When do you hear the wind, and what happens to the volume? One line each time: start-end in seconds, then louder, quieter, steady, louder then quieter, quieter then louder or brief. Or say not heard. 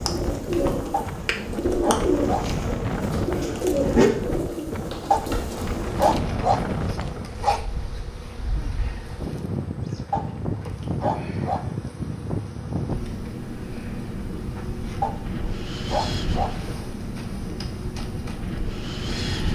0.0-19.5 steady.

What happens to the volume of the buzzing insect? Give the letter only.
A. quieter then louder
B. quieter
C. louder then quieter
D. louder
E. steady
B.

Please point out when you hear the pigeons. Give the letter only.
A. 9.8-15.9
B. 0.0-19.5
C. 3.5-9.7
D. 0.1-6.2
D.